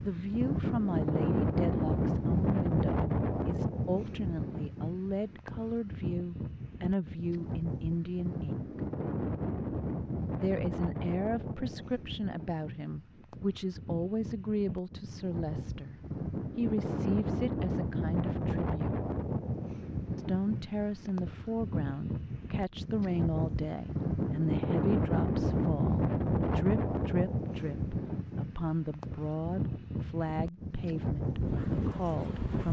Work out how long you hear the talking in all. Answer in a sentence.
You can hear the talking for 30 seconds altogether.